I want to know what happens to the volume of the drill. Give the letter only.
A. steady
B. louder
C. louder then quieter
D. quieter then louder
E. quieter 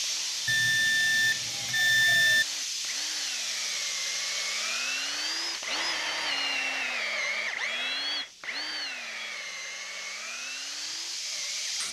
C.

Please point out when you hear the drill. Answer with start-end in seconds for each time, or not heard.
0.0-11.8.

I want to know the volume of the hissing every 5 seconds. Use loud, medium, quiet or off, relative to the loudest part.
loud, medium, loud.